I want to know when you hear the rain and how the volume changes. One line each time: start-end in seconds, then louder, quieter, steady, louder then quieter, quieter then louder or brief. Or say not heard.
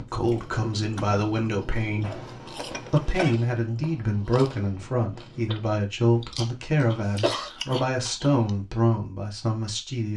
not heard.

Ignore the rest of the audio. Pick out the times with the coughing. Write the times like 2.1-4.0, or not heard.
2.0-3.4, 6.2-7.5.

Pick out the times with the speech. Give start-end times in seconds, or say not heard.
0.0-10.1.